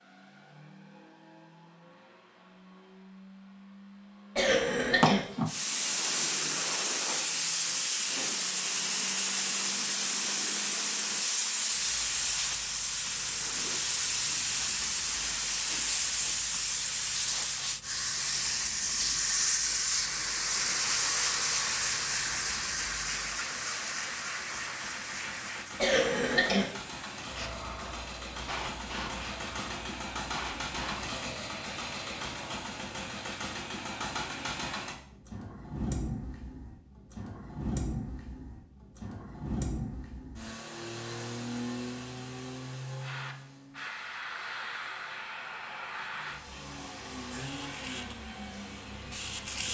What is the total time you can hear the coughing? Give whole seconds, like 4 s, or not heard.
2 s.